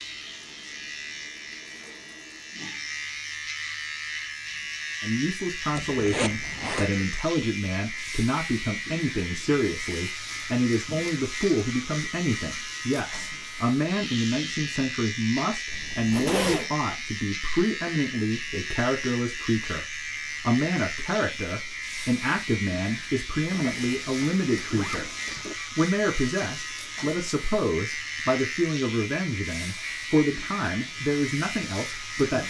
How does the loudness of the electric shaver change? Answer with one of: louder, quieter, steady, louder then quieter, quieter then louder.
steady.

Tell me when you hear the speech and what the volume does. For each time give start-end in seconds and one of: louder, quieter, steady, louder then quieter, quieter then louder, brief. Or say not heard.
5.0-32.4 steady.